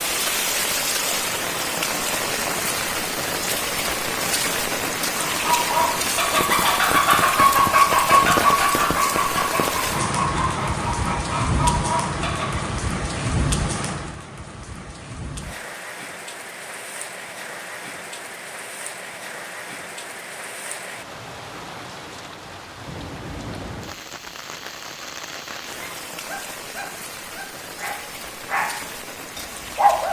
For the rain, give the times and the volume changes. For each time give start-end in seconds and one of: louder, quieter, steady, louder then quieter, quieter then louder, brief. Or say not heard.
0.0-30.0 quieter.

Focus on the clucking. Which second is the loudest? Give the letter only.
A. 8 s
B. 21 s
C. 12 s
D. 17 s
A.